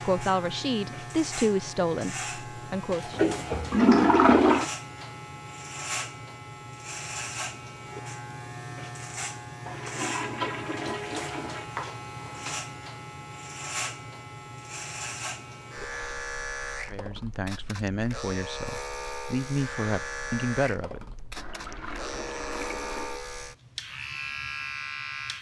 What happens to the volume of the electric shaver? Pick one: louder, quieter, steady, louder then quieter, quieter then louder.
steady.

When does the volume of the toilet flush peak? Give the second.
4 s.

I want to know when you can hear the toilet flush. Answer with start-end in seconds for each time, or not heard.
3.1-4.7, 9.7-11.7, 21.4-23.2.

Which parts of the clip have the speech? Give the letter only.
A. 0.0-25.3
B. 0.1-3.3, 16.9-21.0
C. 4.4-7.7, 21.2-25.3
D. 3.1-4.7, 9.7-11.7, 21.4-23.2
B.